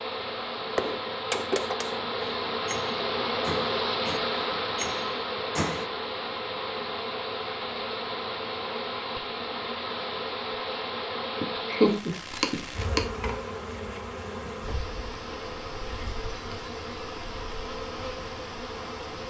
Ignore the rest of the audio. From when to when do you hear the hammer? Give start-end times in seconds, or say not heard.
0.7-5.8.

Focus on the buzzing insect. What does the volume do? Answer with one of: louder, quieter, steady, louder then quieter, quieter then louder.
quieter.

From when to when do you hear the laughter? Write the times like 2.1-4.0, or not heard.
11.4-13.0.